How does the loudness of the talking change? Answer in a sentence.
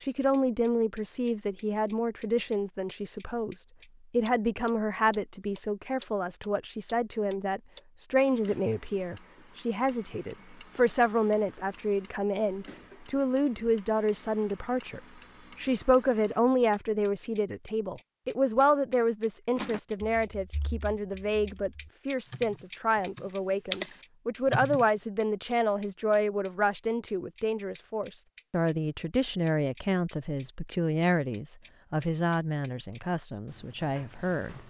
The volume of the talking stays about the same.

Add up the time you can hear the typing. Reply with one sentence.
The typing can be heard for 5 seconds in total.